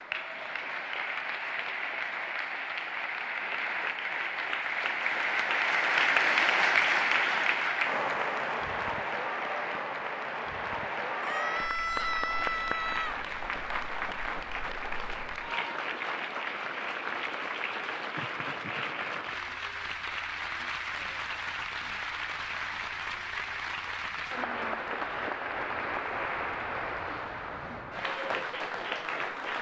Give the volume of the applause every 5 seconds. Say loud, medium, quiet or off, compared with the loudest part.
medium, loud, medium, medium, medium, medium.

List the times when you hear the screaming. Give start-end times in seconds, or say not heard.
11.2-13.2.